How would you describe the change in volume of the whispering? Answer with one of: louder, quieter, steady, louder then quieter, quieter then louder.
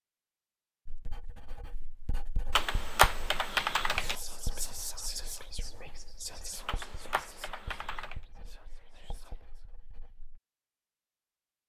quieter.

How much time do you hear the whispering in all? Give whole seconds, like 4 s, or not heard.
6 s.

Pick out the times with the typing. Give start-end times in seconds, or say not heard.
2.5-4.2, 6.7-8.2.